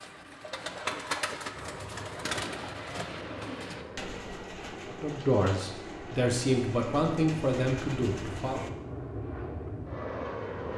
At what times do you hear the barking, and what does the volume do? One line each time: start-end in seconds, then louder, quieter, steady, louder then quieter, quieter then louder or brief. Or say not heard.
not heard.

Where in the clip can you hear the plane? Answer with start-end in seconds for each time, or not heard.
1.6-10.7.